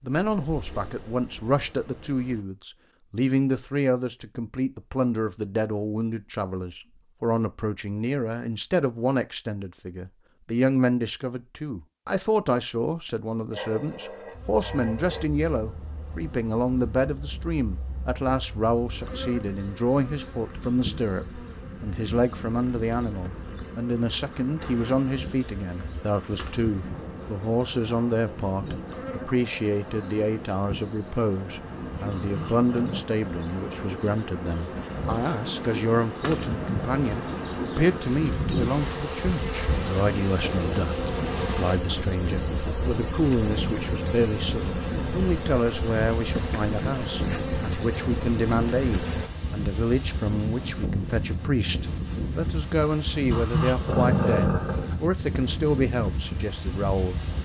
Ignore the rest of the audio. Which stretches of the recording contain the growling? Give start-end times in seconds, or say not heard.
13.5-15.2, 32.1-33.0, 53.3-55.0.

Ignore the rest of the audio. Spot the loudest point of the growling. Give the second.
54 s.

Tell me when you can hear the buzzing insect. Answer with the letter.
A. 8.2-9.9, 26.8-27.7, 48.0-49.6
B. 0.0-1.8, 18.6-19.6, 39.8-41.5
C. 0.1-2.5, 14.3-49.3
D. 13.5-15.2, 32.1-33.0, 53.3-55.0
C.